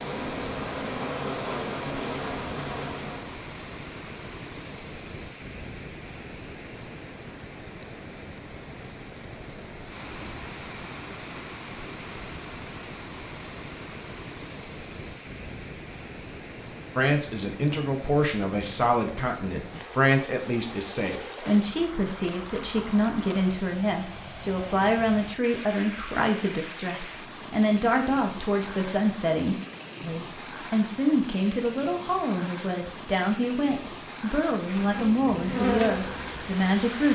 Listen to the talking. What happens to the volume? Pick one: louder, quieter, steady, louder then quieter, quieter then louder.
steady.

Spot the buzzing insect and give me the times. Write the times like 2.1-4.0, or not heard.
0.0-3.4, 34.6-37.1.